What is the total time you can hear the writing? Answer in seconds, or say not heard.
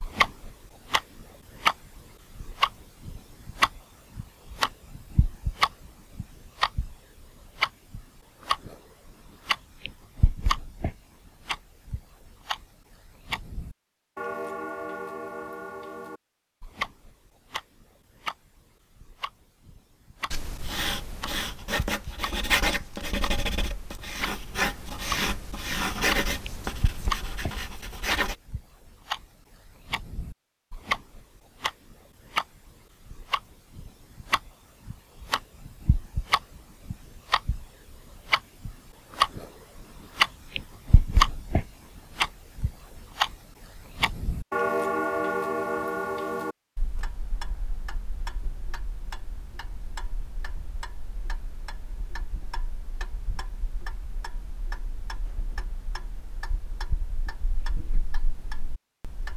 8 s.